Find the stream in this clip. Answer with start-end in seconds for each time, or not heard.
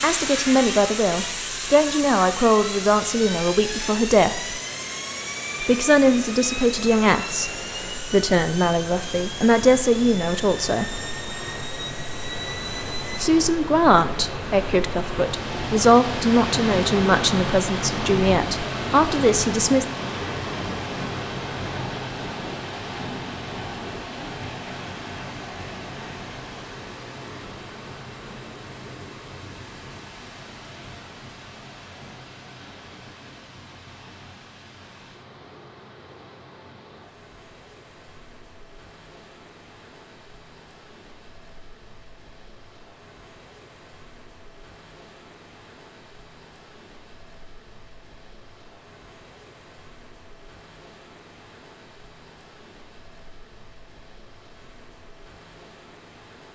0.2-56.5.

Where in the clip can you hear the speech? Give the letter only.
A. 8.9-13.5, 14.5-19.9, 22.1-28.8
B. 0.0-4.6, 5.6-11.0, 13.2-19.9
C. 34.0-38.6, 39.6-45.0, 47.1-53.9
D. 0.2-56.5
B.